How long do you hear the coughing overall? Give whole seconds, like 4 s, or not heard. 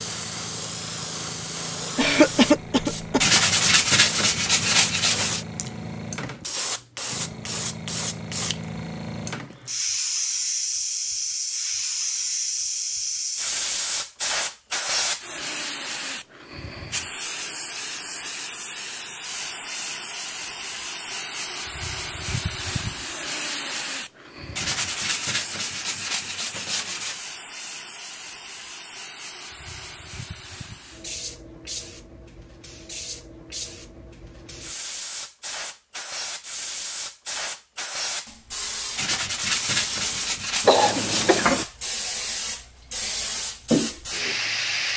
2 s.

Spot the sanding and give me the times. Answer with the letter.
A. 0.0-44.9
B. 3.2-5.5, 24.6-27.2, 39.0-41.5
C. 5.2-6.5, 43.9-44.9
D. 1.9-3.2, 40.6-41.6
B.